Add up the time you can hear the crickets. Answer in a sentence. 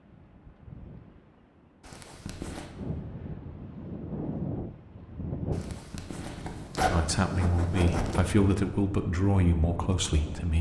The crickets can't be heard in this clip.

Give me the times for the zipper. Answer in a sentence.
You can hear the zipper from 1.8 to 2.7 s and from 5.5 to 8.2 s.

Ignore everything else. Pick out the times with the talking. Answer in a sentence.
You can hear the talking from 6.9 to 10.5 s.